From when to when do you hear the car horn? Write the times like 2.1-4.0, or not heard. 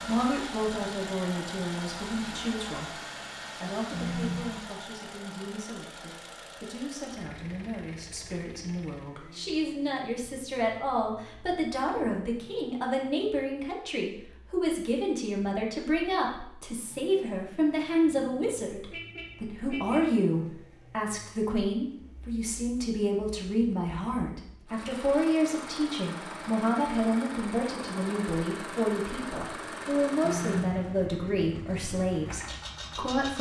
3.9-4.6, 18.3-20.1, 30.2-31.0.